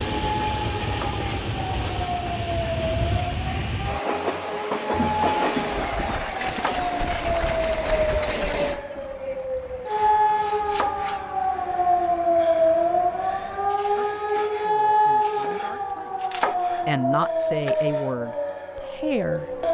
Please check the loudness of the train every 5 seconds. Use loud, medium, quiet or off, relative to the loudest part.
loud, loud, quiet, quiet.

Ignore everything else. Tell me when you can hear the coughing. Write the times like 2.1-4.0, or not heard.
5.0-6.6.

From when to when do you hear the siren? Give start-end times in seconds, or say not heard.
0.0-19.6.